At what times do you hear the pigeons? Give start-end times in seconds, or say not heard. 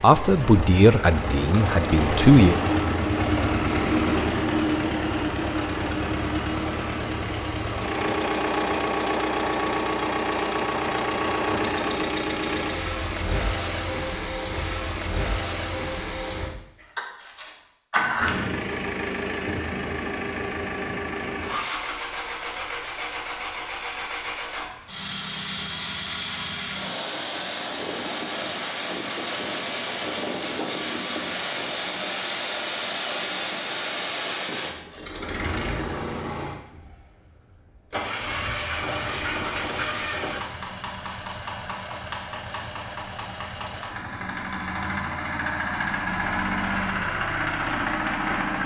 not heard.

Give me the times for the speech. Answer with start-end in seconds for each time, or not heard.
0.0-2.5.